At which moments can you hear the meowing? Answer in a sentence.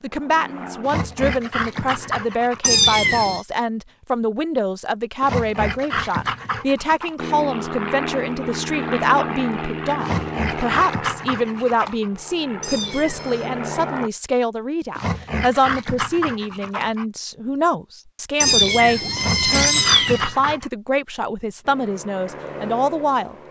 You can hear the meowing from 2.6 to 3.4 s, from 12.6 to 13.5 s and from 18.4 to 20.4 s.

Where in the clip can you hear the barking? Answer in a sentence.
You can hear the barking from 0.8 to 2.7 s, from 5.2 to 7.2 s, from 10.0 to 12.1 s, from 14.9 to 17.1 s and from 19.1 to 20.7 s.